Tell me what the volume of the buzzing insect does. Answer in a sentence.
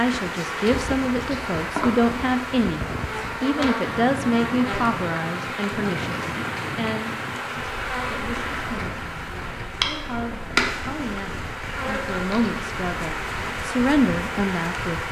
The volume of the buzzing insect stays about the same.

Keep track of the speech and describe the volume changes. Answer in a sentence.
The loudness of the speech goes down, then up.